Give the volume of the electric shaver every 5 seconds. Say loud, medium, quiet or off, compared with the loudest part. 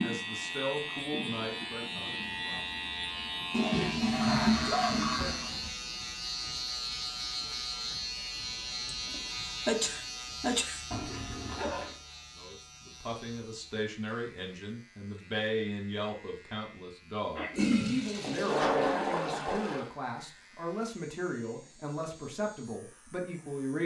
loud, loud, medium, quiet, quiet.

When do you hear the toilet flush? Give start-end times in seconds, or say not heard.
3.5-5.7, 10.9-11.9, 17.5-19.9.